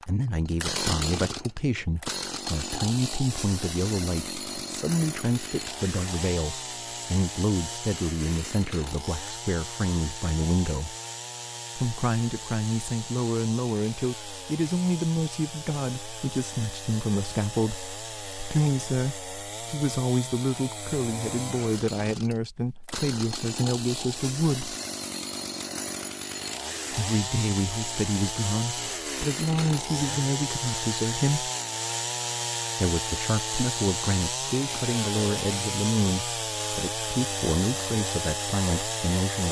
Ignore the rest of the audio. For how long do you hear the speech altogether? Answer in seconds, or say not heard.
35 s.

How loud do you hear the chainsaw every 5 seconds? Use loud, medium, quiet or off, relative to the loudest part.
loud, medium, medium, medium, medium, loud, loud, loud.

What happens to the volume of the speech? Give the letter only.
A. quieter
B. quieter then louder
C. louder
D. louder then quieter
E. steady
E.